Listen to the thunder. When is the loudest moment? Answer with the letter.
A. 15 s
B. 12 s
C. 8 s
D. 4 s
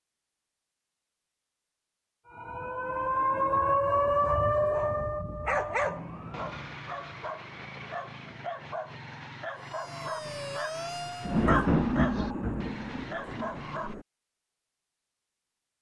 B.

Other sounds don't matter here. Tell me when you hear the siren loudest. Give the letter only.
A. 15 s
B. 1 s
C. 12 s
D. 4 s
D.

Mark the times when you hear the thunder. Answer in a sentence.
The thunder can be heard from 11.2 to 14.0 s.